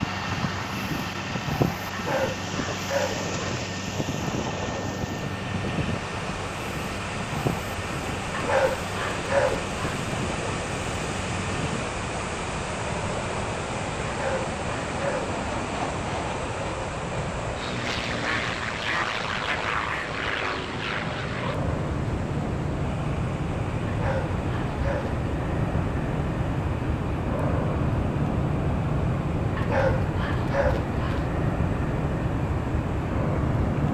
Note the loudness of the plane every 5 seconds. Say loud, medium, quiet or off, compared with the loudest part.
loud, medium, medium, loud, loud, loud, loud.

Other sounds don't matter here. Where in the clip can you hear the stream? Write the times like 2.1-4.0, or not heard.
0.0-33.8.